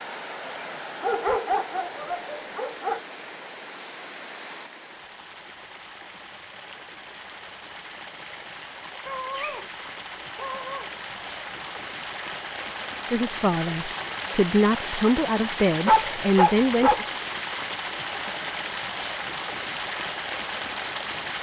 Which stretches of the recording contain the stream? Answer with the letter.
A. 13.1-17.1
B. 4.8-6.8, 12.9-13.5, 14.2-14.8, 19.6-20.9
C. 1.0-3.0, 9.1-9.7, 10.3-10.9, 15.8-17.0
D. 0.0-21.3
D.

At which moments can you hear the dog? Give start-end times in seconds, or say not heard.
1.0-3.0, 9.1-9.7, 10.3-10.9, 15.8-17.0.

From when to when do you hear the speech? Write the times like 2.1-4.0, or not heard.
13.1-17.1.